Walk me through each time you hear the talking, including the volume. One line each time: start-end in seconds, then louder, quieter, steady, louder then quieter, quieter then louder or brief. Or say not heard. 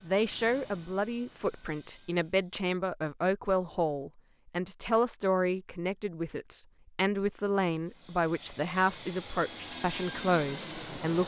0.0-11.2 steady.